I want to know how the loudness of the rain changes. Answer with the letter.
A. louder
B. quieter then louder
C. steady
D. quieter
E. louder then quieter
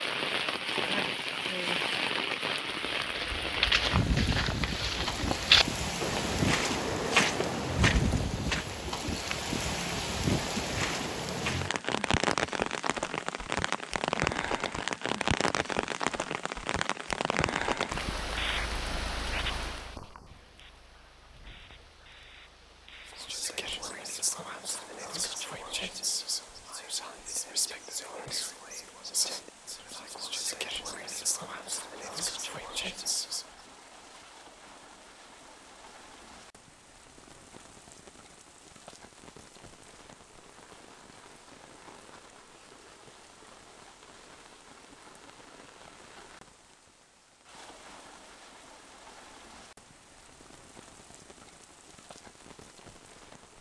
D.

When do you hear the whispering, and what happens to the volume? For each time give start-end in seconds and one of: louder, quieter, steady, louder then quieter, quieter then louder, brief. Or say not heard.
23.1-33.5 steady.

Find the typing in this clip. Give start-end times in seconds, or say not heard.
not heard.